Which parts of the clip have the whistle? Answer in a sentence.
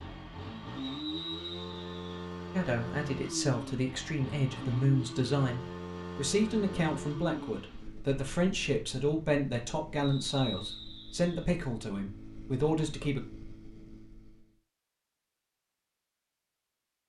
You can hear the whistle from 0.8 to 2.2 s and from 9.9 to 11.4 s.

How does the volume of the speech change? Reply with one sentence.
The volume of the speech stays about the same.